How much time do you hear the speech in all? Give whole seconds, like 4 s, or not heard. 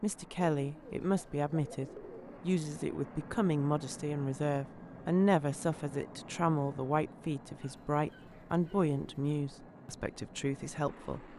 11 s.